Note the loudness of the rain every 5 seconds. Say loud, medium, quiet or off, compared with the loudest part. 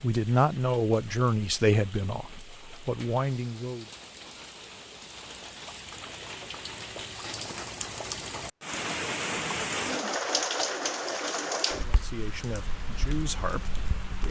quiet, loud, loud.